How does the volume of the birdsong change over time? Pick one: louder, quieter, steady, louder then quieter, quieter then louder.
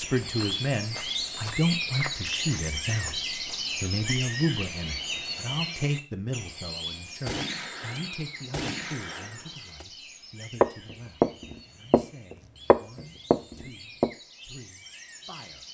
quieter.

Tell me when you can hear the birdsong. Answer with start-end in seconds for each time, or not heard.
0.0-15.6.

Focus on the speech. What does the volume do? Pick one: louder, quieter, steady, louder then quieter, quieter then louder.
quieter.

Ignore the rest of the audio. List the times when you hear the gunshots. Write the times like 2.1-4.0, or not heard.
7.2-9.8.